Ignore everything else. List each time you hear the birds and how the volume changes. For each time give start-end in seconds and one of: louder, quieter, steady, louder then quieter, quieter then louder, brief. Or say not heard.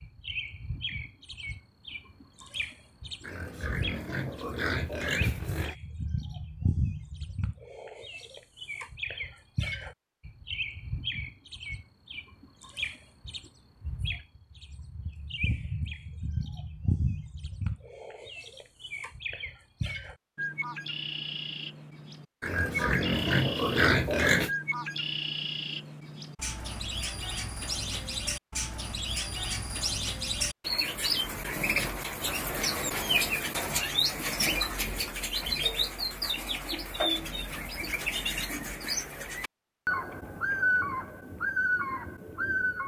0.0-42.8 louder.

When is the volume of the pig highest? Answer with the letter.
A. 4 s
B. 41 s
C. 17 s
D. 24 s
D.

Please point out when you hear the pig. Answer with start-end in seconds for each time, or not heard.
3.2-5.8, 22.4-24.5.